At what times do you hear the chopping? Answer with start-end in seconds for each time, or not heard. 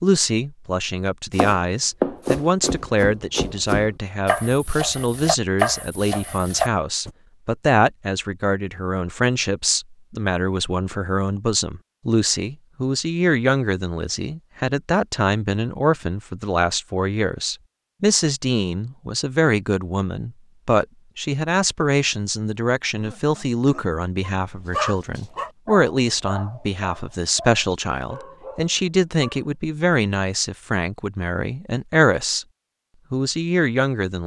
1.4-7.1.